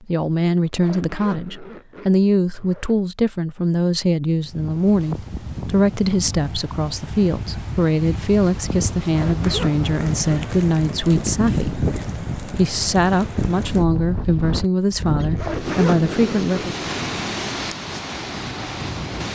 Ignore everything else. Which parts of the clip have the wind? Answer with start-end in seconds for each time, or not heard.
4.3-19.2.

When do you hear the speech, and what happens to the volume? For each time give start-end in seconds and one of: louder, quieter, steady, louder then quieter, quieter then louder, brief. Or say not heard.
0.1-16.8 steady.